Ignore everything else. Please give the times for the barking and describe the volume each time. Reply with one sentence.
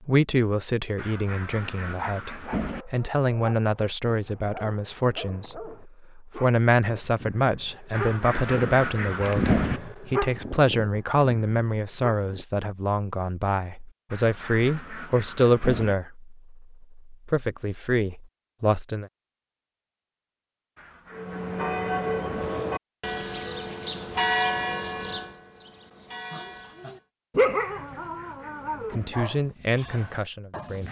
The barking can be heard from 2.3 to 12.4 s, getting louder then quieter; and from 26.3 to 30.8 s, getting quieter.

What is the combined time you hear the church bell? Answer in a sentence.
You can hear the church bell for 6 seconds altogether.